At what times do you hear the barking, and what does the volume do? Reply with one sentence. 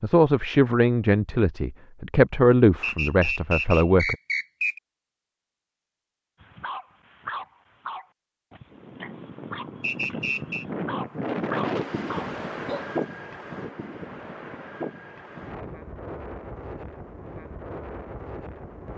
The barking can be heard from 6.4 to 12.9 s, getting quieter then louder.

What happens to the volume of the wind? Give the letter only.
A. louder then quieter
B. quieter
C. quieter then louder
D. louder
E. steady
A.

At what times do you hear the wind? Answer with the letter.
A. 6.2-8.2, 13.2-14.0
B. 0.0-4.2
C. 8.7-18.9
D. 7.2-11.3
C.